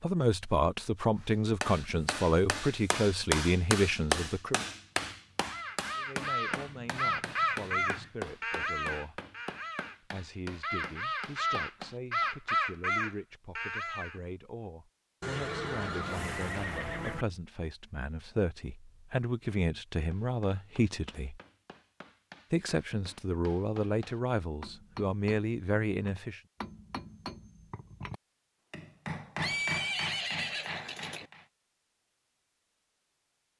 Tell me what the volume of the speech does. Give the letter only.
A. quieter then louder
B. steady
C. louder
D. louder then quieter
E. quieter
A.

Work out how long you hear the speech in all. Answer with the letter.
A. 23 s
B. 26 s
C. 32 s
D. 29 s
A.